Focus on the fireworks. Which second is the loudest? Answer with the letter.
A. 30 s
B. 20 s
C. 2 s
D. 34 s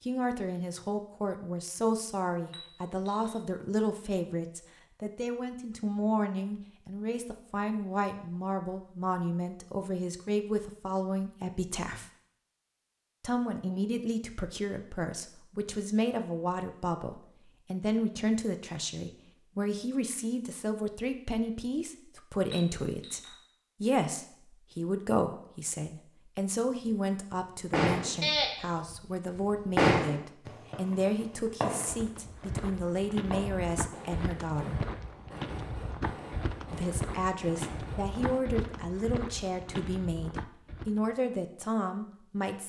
A.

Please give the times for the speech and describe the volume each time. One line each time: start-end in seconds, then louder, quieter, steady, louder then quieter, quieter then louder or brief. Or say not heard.
0.0-12.1 steady
13.2-34.9 steady
36.7-42.6 steady.